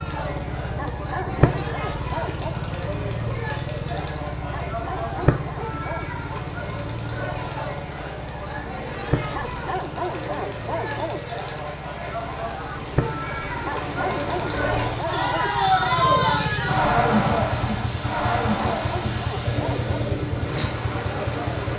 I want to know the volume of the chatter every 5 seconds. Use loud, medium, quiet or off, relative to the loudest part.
medium, medium, medium, loud, medium.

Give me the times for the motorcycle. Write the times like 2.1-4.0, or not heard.
0.0-21.7.